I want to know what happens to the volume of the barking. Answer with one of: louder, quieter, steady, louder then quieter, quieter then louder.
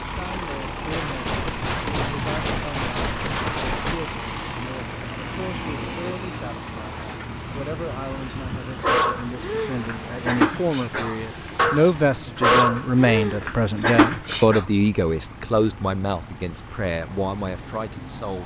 louder.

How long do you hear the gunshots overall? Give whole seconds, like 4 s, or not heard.
3 s.